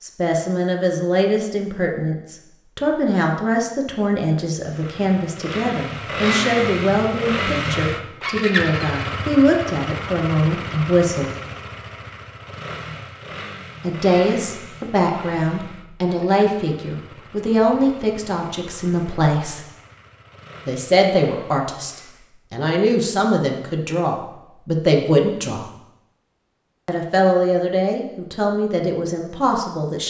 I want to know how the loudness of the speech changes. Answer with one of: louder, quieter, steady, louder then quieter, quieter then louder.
steady.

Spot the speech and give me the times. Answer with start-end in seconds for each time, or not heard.
0.0-11.3, 13.8-19.6, 20.6-25.6, 26.9-30.0.